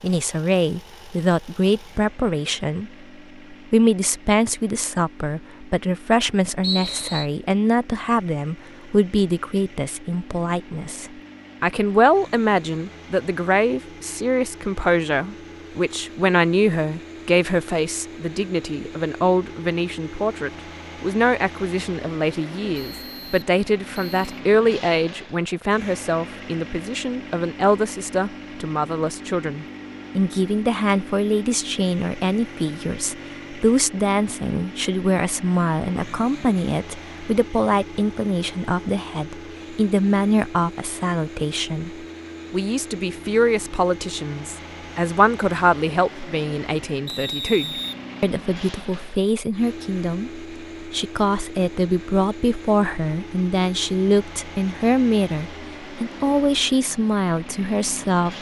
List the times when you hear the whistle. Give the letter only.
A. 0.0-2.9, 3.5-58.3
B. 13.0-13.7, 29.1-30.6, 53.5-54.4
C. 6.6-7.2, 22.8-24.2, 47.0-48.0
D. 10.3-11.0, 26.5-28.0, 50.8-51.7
C.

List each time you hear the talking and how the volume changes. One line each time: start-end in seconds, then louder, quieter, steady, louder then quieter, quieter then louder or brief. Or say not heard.
0.0-2.9 brief
3.5-58.3 steady.